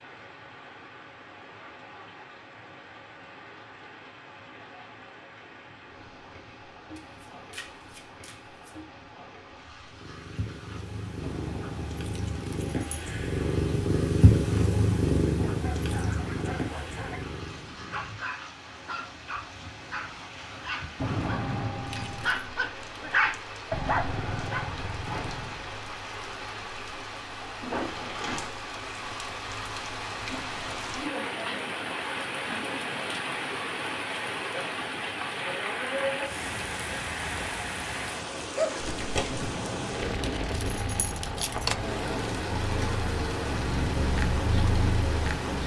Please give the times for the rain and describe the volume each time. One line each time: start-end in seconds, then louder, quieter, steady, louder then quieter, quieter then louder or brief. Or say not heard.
0.0-45.6 louder.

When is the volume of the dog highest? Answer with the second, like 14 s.
23 s.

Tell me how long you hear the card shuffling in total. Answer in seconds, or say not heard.
3 s.